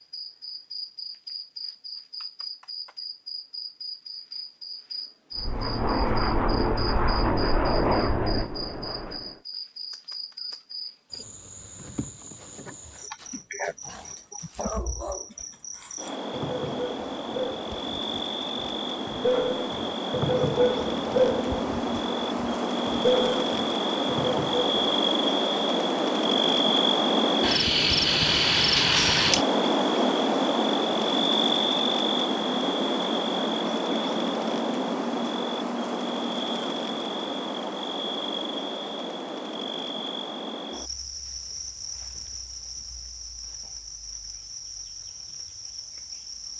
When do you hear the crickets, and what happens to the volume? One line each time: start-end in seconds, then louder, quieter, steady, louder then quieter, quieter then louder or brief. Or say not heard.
0.0-46.5 louder then quieter.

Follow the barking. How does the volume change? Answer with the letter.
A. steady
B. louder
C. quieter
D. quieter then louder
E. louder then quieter
B.